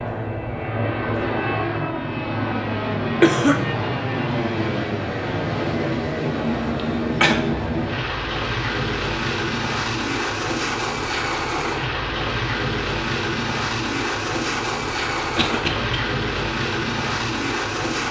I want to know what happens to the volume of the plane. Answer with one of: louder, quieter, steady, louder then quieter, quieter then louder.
steady.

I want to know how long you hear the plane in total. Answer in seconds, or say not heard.
18 s.